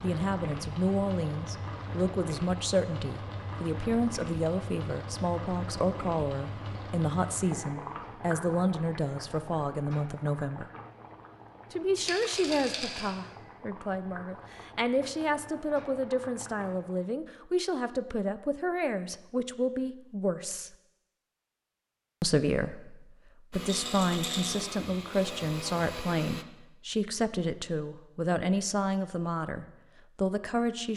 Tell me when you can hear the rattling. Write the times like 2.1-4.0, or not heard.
12.1-13.2, 23.6-24.7.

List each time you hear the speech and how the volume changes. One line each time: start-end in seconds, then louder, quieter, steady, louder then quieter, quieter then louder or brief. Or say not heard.
0.0-10.7 steady
11.7-20.8 steady
22.2-30.9 steady.